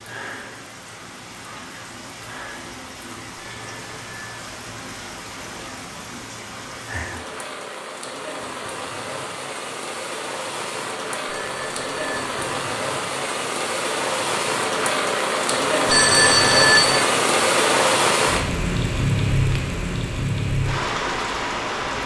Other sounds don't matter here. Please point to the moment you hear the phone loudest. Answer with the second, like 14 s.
17 s.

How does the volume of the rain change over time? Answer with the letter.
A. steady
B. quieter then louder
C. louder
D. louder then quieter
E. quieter
C.